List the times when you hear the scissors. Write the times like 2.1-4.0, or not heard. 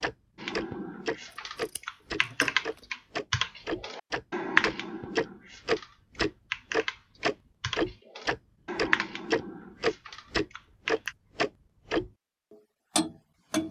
1.2-2.9, 10.1-11.2.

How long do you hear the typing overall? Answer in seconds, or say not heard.
11 s.